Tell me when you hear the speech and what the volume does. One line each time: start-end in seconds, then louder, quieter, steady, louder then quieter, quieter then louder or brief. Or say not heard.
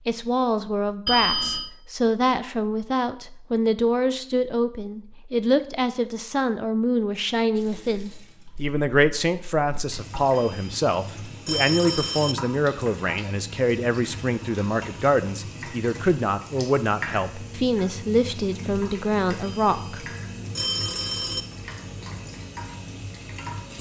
0.1-20.0 steady.